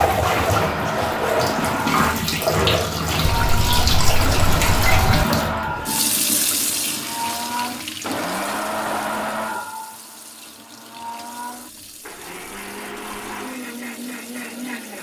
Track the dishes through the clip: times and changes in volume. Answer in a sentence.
The dishes can't be heard in this clip.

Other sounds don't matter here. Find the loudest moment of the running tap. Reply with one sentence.
The loudest moment of the running tap is at 2 seconds.